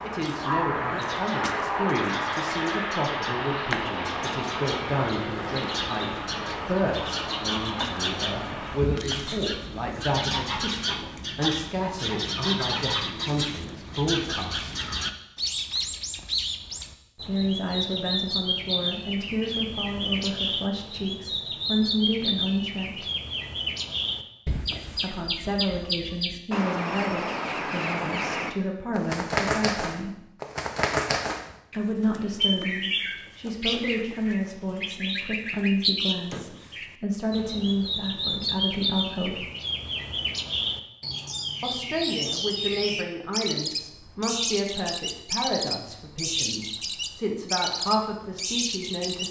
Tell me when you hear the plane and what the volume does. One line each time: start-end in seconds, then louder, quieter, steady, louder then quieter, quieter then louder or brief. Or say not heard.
0.0-8.8 quieter.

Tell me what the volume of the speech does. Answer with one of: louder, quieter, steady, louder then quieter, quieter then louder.
steady.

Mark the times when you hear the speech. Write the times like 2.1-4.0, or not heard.
0.0-14.8, 17.2-23.1, 24.9-30.1, 31.7-39.5, 41.6-49.2.